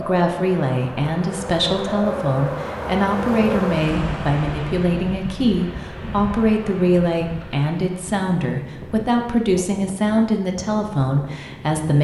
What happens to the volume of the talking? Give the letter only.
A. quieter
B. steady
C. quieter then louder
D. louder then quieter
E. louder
B.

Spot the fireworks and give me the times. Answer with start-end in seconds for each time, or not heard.
not heard.